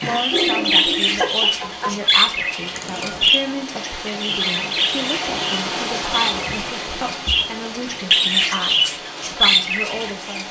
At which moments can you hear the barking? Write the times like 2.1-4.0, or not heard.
0.0-1.9.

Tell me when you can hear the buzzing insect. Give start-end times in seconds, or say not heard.
not heard.